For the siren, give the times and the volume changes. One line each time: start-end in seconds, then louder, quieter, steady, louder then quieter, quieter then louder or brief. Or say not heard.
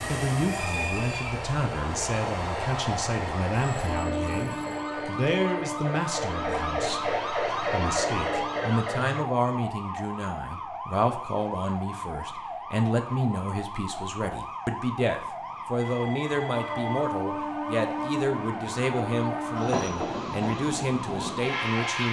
0.2-22.0 louder then quieter.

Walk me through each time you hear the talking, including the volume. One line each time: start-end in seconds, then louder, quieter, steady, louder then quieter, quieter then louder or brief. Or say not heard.
0.0-22.0 steady.